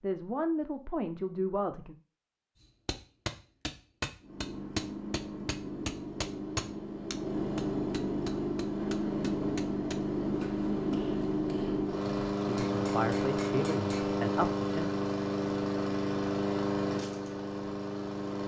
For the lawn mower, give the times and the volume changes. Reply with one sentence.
The lawn mower can be heard from 4.2 to 18.4 s, getting louder.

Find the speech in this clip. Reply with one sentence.
The speech can be heard from 0.0 to 1.9 s and from 12.6 to 15.0 s.